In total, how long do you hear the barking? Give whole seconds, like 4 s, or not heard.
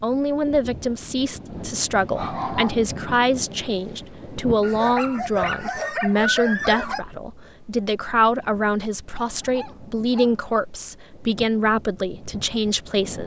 6 s.